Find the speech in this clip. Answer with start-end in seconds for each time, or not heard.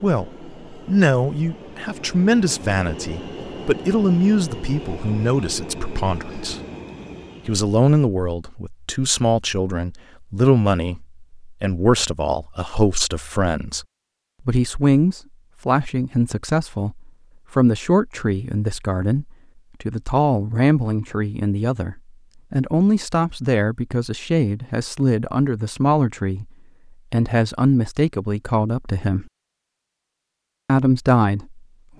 0.0-6.6, 7.5-13.8, 14.4-26.5, 27.1-29.2, 30.6-31.9.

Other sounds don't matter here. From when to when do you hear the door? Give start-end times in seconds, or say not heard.
not heard.